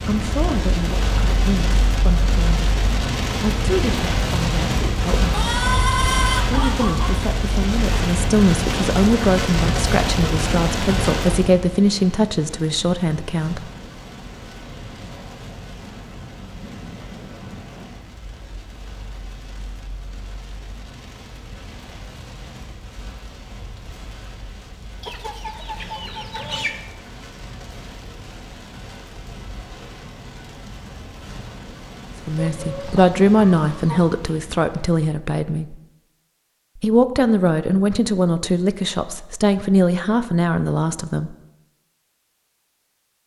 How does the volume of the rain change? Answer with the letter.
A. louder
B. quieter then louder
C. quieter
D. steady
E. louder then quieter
C.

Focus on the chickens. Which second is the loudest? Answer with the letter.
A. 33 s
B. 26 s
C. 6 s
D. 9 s
C.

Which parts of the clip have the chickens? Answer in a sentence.
You can hear the chickens from 5.3 to 7.2 s, from 25.0 to 26.8 s and from 32.4 to 34.2 s.